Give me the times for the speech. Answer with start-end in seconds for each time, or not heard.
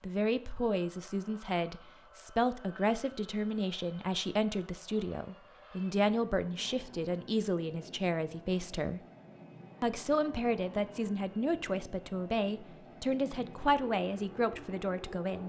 0.0-9.0, 9.8-15.4.